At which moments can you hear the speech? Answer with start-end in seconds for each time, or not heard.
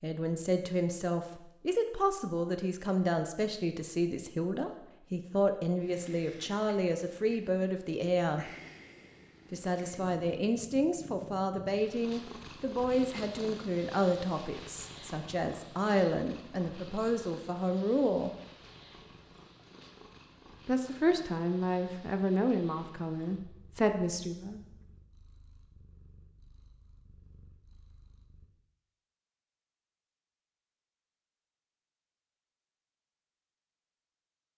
0.0-8.5, 9.5-18.3, 20.6-24.6.